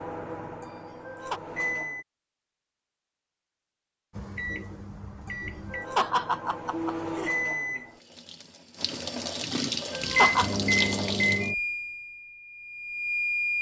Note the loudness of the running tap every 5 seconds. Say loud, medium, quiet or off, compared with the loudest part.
off, loud, loud.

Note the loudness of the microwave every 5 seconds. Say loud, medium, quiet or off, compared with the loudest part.
medium, medium, loud.